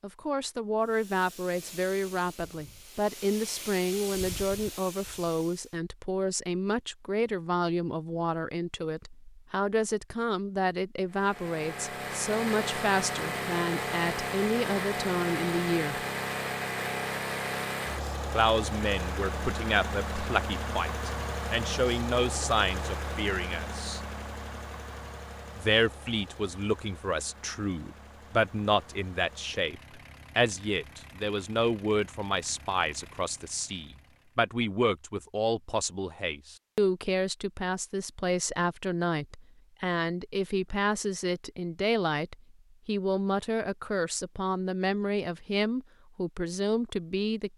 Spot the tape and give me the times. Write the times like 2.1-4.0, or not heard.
not heard.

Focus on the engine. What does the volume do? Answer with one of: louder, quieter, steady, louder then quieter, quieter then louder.
quieter.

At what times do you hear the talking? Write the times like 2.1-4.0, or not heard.
0.0-16.0, 18.3-24.0, 25.6-47.5.